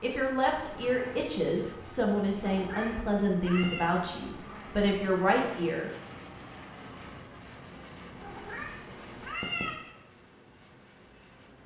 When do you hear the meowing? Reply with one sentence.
You can hear the meowing from 2.5 to 3.9 s and from 8.2 to 9.8 s.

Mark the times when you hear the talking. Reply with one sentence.
You can hear the talking from 0.0 to 5.9 s.